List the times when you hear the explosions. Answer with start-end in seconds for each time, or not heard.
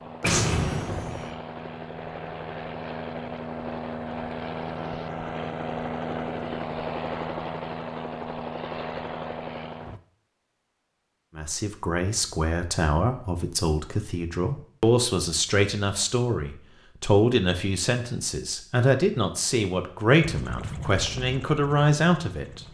0.2-1.3.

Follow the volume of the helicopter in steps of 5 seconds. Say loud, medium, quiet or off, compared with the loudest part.
loud, loud, off, off, medium.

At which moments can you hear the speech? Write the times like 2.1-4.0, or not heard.
11.3-22.6.